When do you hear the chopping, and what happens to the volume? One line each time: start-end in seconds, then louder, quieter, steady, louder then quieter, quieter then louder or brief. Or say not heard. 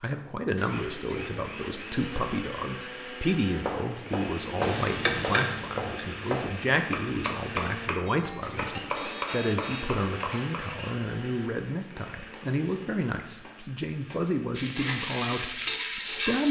3.6-14.9 quieter.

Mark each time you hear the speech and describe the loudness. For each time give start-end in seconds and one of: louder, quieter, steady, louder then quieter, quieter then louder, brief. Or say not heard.
0.0-16.4 steady.